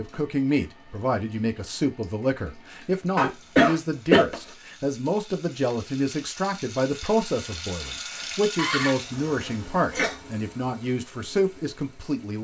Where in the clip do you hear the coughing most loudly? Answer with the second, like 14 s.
4 s.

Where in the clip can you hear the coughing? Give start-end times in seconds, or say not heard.
3.1-4.3, 8.6-10.2.